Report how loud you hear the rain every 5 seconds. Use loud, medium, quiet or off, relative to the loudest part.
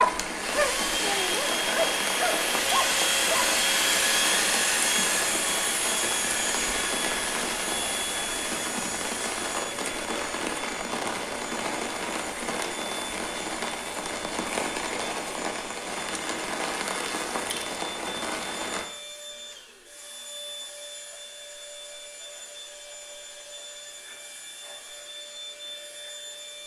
loud, loud, loud, loud, off, off.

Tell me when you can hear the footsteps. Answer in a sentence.
You can't hear the footsteps here.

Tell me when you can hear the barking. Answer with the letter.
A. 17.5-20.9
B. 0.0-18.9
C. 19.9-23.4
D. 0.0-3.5
D.